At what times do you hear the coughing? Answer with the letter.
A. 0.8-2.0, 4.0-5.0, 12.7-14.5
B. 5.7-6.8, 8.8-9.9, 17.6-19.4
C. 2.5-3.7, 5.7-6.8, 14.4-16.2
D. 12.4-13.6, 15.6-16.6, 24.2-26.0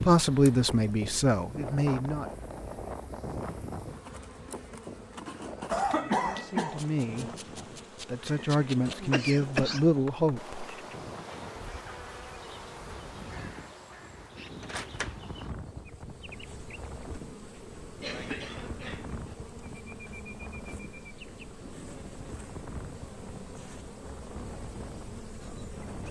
B.